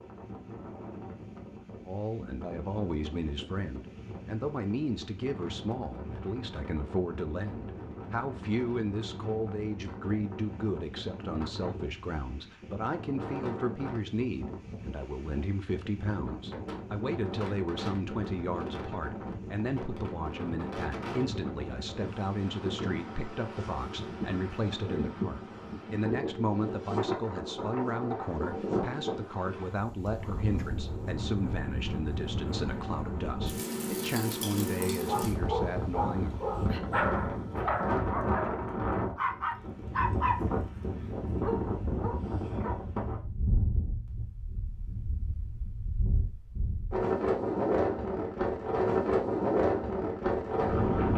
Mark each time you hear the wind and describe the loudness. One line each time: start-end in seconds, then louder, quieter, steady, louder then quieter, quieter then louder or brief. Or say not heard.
0.0-51.1 louder.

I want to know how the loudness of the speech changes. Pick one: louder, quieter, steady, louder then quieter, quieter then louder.
steady.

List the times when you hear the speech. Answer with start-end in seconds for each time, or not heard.
1.9-36.4.